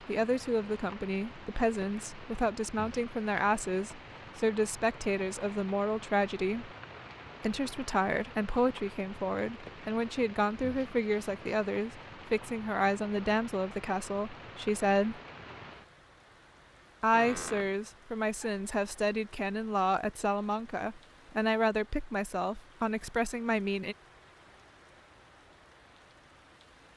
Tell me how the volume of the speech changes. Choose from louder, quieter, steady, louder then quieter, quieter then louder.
steady.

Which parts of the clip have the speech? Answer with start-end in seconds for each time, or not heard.
0.1-6.7, 7.4-15.2, 17.0-23.9.